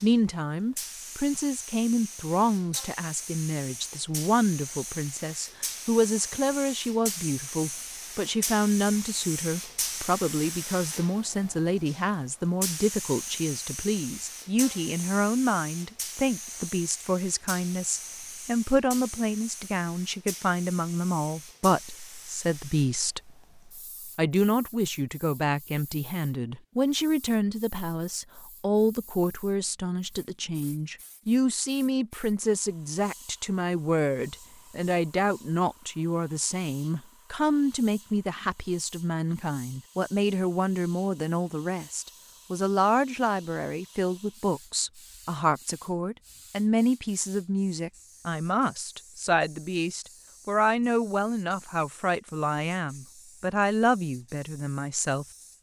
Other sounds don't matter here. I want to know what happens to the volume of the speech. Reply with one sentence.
The volume of the speech stays about the same.